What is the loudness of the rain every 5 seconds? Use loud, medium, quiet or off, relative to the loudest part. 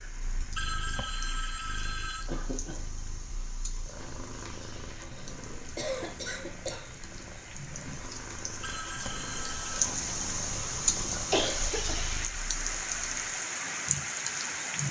quiet, medium, loud.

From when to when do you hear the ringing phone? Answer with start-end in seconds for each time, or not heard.
0.6-2.3, 8.6-9.9.